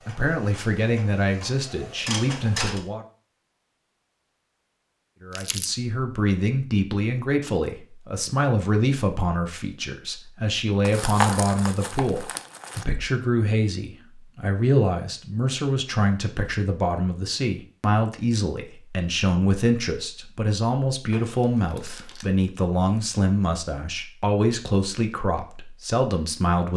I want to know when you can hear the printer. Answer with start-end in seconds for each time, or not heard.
0.0-2.8.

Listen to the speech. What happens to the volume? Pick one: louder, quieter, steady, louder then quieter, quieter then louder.
steady.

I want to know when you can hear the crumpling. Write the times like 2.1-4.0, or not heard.
5.3-5.7, 10.8-12.8, 21.1-22.2.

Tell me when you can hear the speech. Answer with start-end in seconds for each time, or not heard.
0.1-3.0, 5.2-26.7.